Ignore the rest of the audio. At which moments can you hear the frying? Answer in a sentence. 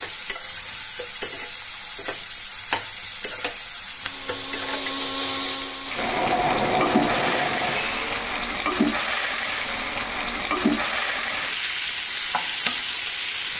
You can hear the frying from 0.0 to 13.5 s.